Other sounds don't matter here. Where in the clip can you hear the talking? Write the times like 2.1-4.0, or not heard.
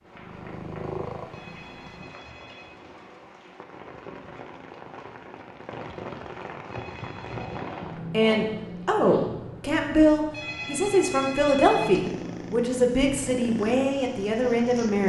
8.1-15.0.